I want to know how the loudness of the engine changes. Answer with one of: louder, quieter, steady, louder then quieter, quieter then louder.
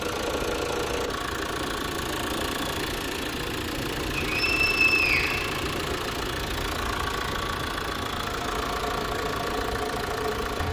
steady.